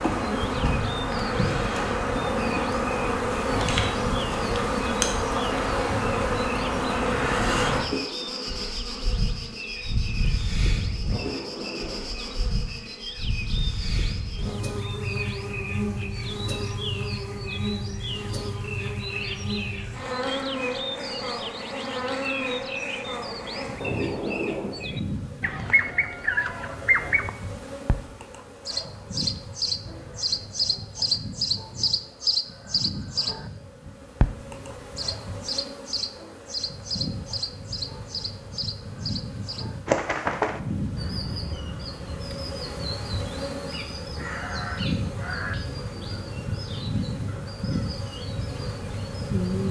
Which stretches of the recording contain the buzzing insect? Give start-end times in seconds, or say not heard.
0.0-49.6.